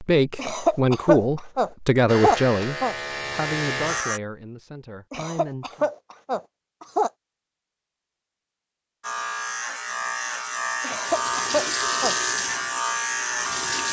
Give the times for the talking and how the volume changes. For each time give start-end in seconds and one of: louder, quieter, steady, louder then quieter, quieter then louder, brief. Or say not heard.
0.0-5.9 quieter.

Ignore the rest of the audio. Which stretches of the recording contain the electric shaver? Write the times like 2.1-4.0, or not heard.
2.0-4.2, 9.0-13.8.